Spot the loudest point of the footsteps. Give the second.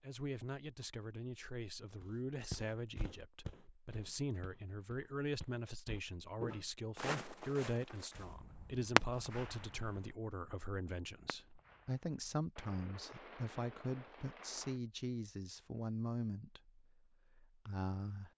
7 s.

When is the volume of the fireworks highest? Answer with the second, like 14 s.
9 s.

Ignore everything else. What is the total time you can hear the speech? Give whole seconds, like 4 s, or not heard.
18 s.